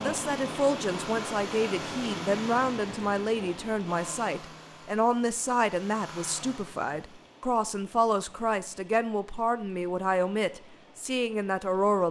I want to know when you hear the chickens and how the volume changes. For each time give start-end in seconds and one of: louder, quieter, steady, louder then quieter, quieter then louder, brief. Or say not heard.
not heard.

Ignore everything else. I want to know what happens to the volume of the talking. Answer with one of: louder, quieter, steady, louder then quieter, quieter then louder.
steady.